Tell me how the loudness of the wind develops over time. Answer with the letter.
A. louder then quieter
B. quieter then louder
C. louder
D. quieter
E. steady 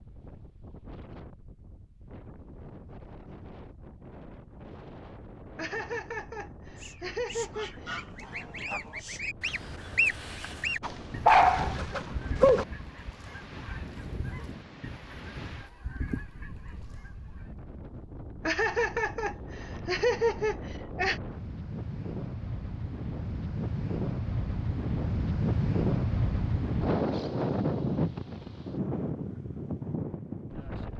C.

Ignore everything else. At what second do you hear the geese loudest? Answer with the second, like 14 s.
10 s.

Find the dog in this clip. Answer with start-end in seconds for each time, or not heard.
10.8-12.7.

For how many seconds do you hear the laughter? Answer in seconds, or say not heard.
5 s.